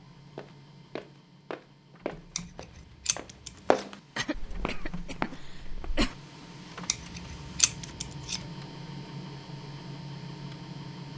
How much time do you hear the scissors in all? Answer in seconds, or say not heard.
3 s.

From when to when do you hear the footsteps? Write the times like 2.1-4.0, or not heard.
0.3-6.0.